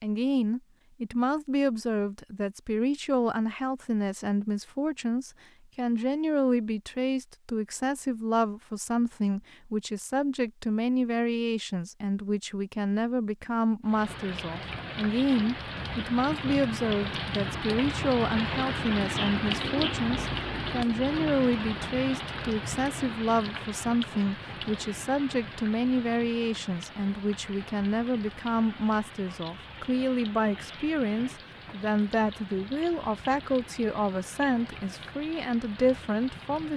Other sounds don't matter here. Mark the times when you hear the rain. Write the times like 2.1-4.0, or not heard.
13.8-36.7.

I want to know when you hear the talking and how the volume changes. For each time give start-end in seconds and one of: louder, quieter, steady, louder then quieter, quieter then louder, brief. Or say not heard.
0.0-36.7 steady.